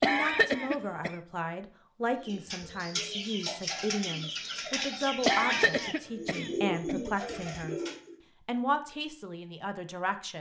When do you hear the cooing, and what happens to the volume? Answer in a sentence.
You can hear the cooing from 2.2 to 8.2 s, at a steady volume.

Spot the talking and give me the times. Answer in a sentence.
You can hear the talking from 0.0 to 7.8 s and from 8.4 to 10.3 s.